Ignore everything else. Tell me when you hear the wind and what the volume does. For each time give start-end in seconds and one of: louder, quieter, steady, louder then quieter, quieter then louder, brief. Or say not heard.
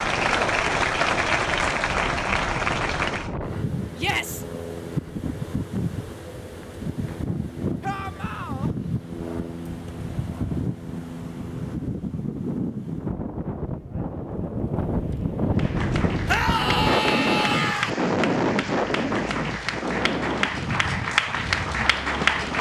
0.0-22.5 louder.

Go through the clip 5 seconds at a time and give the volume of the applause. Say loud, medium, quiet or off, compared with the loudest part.
loud, off, off, medium, loud.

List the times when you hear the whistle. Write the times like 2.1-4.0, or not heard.
not heard.